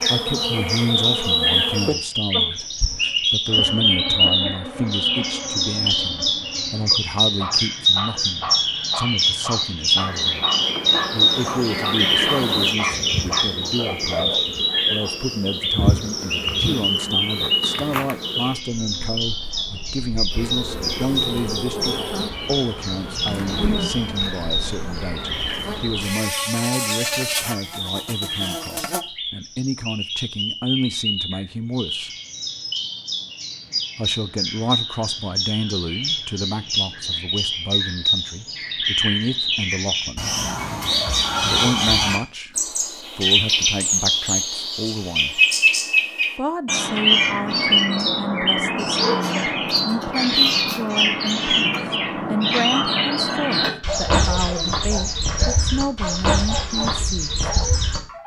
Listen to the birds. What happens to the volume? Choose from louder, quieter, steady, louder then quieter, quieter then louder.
quieter then louder.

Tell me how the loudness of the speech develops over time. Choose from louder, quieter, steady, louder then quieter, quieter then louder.
steady.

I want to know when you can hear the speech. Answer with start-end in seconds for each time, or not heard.
0.1-10.3, 11.1-32.1, 34.0-40.4, 41.4-45.4, 46.4-57.4.